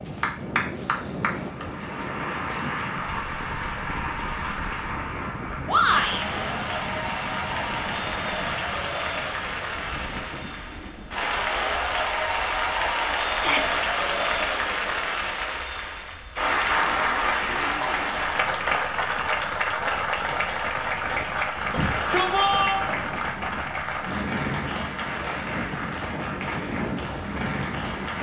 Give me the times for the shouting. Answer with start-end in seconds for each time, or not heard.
5.7-6.2, 13.3-13.8, 21.7-22.9.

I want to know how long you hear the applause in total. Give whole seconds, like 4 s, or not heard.
28 s.